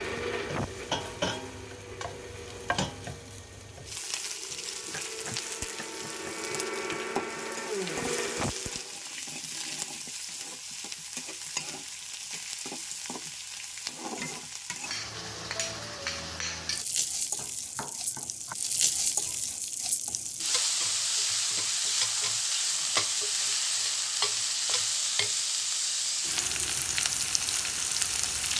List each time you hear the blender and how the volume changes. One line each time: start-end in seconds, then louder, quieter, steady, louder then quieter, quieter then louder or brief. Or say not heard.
0.0-9.0 quieter then louder.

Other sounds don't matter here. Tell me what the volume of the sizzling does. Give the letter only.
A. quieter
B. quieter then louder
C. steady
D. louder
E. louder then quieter
D.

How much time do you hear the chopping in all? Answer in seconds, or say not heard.
4 s.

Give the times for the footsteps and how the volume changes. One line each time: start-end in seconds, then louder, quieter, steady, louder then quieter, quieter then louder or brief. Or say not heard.
not heard.